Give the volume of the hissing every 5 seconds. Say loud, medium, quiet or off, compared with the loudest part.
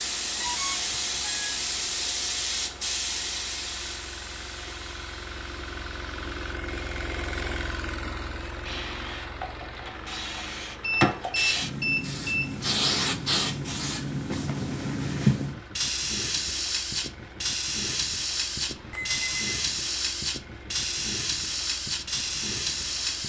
loud, quiet, loud, loud, loud.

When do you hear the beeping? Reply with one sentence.
You can hear the beeping from 0.4 to 1.6 s, from 10.8 to 12.6 s and from 18.9 to 19.5 s.